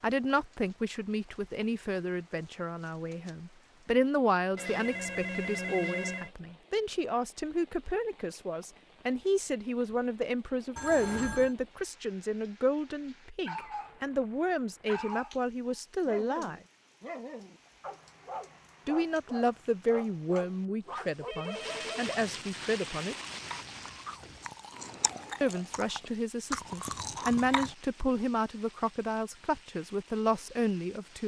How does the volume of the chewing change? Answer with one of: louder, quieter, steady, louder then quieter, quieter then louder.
louder.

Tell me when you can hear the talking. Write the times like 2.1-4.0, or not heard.
0.0-16.6, 18.9-23.1, 25.4-31.2.